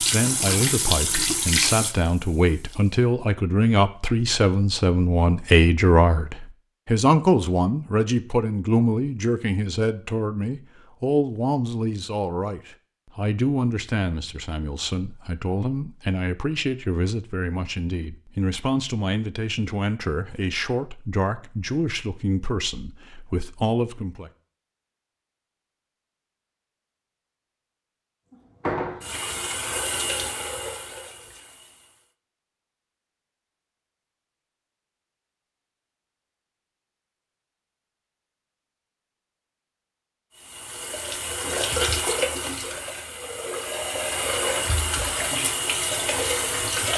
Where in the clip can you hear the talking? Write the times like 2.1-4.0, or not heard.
0.0-24.3.